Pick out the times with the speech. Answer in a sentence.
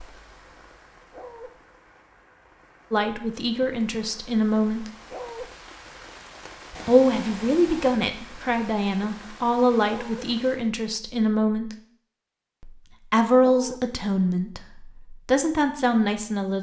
You can hear the speech from 2.9 to 4.9 s, from 6.8 to 11.8 s and from 12.6 to 16.5 s.